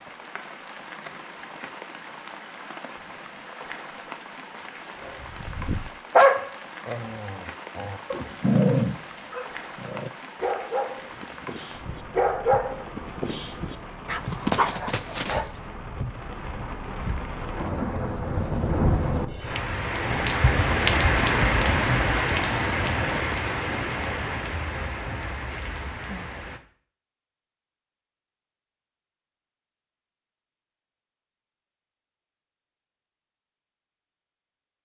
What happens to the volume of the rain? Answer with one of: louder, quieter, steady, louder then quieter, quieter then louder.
louder.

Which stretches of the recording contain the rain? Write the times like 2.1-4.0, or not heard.
0.0-26.6.